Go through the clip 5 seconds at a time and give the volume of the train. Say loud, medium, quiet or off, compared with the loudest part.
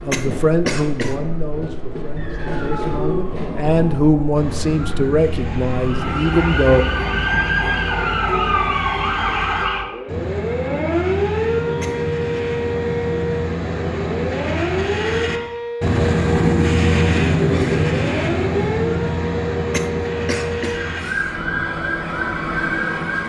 medium, medium, medium, loud, medium.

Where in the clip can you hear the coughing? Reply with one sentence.
The coughing can be heard from 0.1 to 1.2 s, from 11.8 to 12.4 s and from 19.7 to 21.4 s.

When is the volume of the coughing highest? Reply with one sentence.
The loudest moment of the coughing is at 1 second.